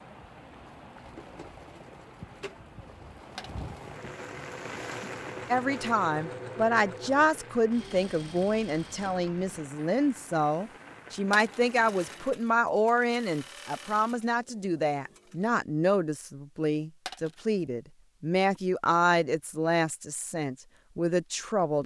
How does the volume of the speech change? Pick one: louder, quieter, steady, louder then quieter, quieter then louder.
steady.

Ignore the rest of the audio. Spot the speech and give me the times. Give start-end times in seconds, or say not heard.
5.5-21.8.